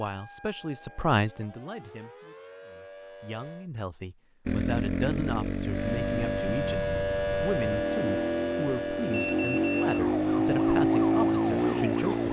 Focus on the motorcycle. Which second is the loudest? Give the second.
11 s.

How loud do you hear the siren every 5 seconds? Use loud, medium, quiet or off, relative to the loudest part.
quiet, loud, medium.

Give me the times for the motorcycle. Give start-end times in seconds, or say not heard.
4.5-12.2.